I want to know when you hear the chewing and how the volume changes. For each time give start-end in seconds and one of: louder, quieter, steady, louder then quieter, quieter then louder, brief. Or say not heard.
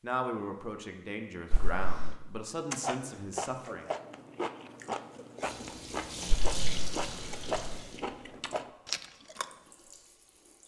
2.7-9.5 steady.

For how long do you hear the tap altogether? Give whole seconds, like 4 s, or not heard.
5 s.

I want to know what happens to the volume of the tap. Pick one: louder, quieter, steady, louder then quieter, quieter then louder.
quieter then louder.